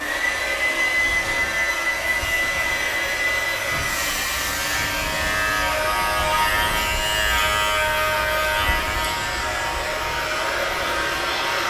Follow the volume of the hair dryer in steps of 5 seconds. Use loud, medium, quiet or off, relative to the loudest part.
loud, medium, loud.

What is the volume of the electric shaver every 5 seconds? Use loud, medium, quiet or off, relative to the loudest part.
medium, loud, medium.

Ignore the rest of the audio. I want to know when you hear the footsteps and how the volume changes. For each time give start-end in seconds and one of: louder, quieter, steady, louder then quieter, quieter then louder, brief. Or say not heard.
not heard.